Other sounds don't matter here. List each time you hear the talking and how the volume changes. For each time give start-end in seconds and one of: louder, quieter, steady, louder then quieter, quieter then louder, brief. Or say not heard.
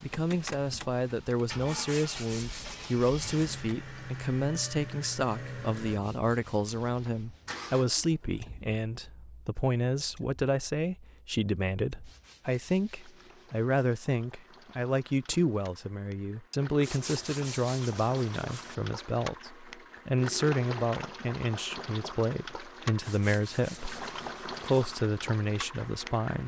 0.0-26.4 steady.